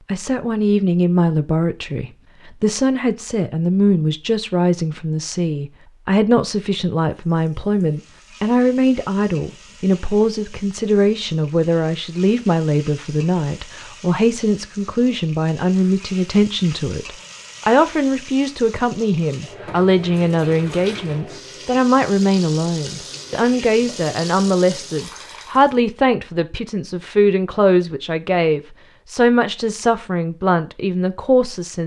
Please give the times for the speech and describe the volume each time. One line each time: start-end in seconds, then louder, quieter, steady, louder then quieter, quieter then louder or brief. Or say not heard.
0.1-31.8 steady.